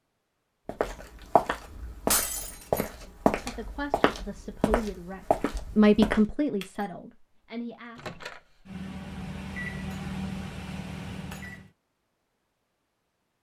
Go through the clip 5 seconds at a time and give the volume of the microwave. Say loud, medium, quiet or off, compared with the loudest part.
off, loud, loud.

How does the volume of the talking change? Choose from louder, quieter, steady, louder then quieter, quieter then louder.
louder then quieter.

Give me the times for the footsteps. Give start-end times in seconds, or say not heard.
0.7-6.2.